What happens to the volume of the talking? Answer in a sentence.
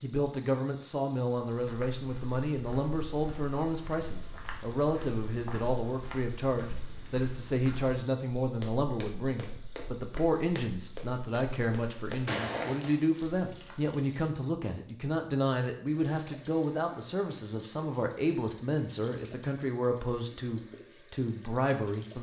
The volume of the talking stays about the same.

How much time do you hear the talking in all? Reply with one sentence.
You can hear the talking for 22 seconds altogether.